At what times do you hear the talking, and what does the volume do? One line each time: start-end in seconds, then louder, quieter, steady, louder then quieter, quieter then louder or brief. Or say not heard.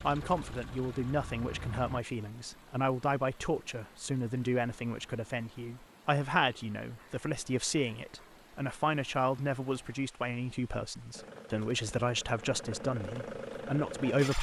0.0-14.3 steady.